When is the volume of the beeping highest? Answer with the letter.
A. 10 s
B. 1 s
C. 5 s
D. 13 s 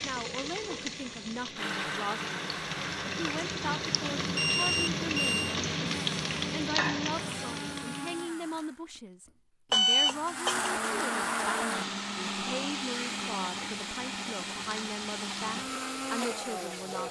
A.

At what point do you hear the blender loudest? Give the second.
11 s.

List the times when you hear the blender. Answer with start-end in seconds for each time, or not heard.
1.6-17.0.